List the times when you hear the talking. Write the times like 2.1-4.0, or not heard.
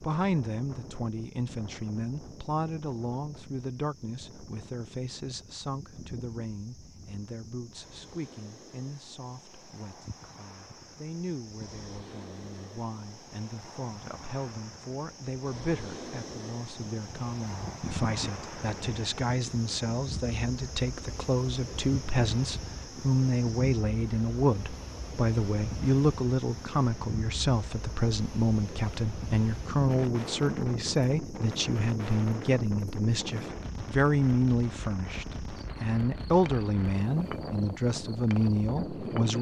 0.0-39.3.